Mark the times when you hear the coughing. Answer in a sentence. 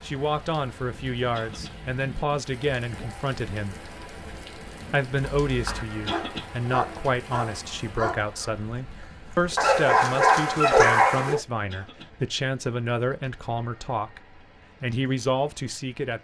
The coughing can be heard from 1.3 to 1.8 s, from 6.0 to 6.5 s and from 11.7 to 12.1 s.